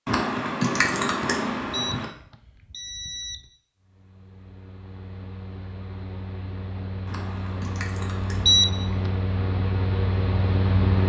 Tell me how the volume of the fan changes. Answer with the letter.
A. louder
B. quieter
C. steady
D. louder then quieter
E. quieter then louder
A.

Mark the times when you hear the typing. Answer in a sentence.
You can hear the typing from 0.1 to 2.1 s and from 7.0 to 9.0 s.